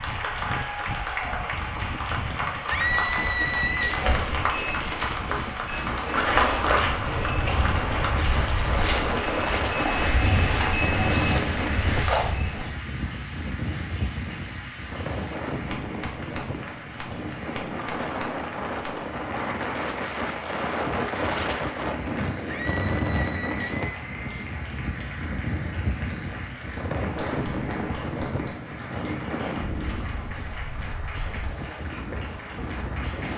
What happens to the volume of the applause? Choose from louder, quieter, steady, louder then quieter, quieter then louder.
quieter.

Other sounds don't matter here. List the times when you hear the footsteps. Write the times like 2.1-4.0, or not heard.
2.6-12.8.